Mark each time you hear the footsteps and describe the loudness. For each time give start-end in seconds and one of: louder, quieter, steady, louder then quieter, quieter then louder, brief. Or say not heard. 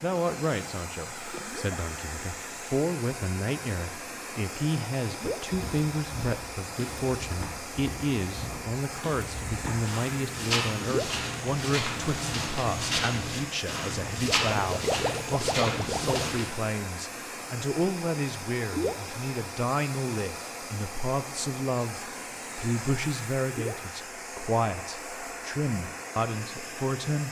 5.5-16.4 louder.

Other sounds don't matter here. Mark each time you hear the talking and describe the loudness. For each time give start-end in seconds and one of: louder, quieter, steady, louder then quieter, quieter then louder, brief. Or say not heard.
0.0-27.2 steady.